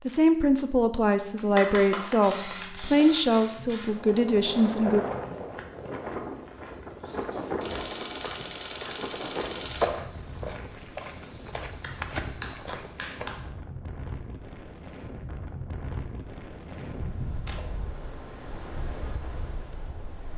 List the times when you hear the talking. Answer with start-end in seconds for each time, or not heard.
0.1-5.0.